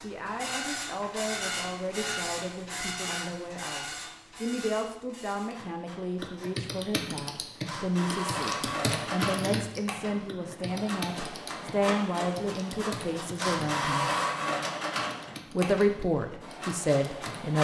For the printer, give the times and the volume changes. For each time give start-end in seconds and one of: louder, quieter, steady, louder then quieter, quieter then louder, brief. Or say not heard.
0.0-17.5 quieter then louder.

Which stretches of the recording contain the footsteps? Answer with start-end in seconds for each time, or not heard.
not heard.